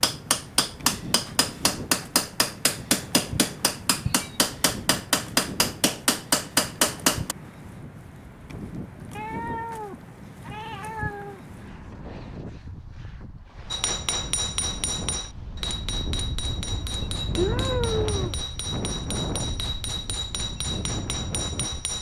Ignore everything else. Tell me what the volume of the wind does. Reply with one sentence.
The loudness of the wind goes up.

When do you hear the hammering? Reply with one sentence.
You can hear the hammering from 0.0 to 7.3 s and from 13.7 to 21.9 s.